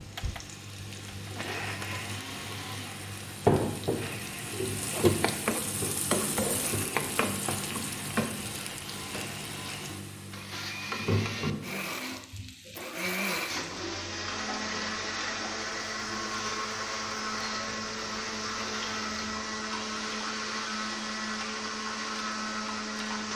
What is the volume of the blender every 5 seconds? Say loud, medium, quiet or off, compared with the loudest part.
medium, medium, loud, loud, loud.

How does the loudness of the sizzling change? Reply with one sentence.
The loudness of the sizzling goes down.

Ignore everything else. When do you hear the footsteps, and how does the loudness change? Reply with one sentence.
The footsteps can't be heard in this clip.